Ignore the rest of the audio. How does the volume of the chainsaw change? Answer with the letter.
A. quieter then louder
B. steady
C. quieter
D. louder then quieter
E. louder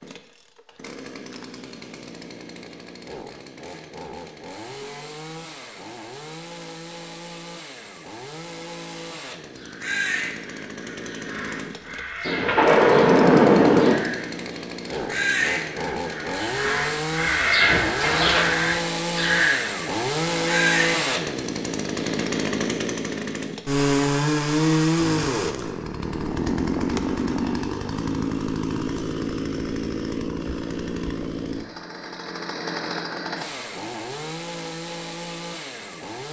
D.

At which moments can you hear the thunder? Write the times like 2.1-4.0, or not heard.
12.2-13.9.